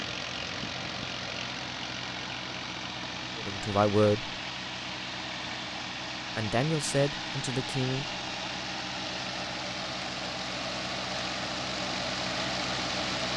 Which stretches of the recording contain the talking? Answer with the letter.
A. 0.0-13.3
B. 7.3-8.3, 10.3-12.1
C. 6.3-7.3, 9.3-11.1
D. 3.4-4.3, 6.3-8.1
D.